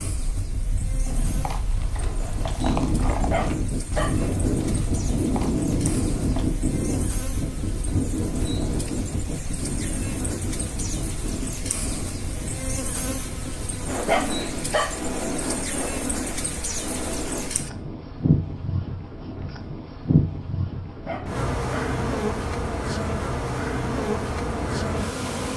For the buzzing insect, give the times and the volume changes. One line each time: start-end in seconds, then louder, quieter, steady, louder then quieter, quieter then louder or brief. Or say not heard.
0.0-25.5 louder.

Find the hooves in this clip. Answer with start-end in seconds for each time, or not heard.
1.0-6.5.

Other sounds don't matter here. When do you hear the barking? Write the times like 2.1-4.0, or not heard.
3.3-4.2, 14.1-15.0, 21.1-21.9.